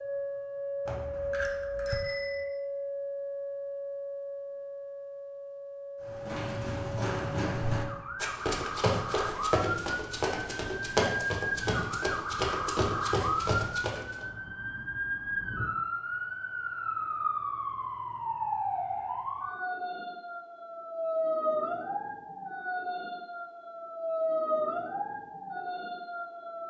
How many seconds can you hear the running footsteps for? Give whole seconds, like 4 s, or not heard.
8 s.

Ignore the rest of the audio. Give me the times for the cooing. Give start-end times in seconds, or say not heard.
not heard.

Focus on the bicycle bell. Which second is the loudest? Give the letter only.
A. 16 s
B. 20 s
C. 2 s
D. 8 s
C.